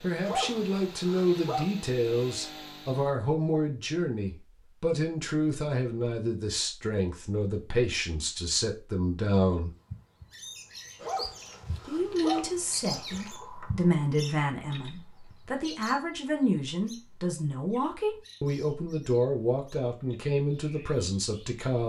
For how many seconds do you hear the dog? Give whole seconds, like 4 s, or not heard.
4 s.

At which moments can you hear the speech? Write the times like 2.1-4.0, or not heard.
0.0-9.7, 11.8-21.8.